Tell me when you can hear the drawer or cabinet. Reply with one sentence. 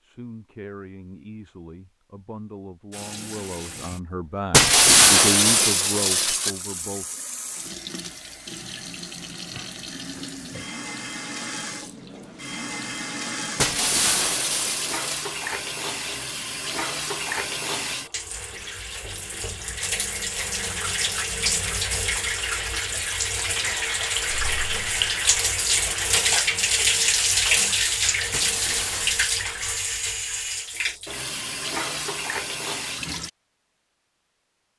The drawer or cabinet can't be heard in this clip.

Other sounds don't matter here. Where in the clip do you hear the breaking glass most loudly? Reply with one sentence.
The volume of the breaking glass peaks at 5 seconds.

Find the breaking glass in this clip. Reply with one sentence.
You can hear the breaking glass from 4.5 to 6.5 s, from 13.6 to 15.2 s and from 28.3 to 29.1 s.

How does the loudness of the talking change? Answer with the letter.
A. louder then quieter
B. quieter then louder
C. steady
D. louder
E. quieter
D.